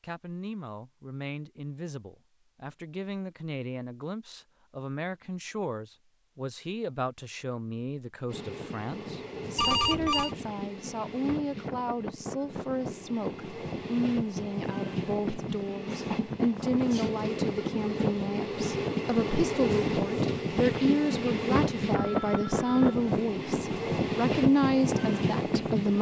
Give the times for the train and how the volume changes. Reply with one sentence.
You can hear the train from 8.2 to 25.9 s, getting louder.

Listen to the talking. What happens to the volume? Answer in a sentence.
The volume of the talking goes up.